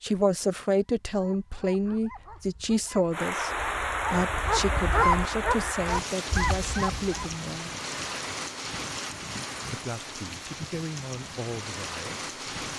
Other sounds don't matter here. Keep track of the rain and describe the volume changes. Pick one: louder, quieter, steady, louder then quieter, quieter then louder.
quieter.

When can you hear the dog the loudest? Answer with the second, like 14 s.
5 s.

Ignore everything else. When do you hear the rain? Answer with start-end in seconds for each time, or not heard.
3.1-12.7.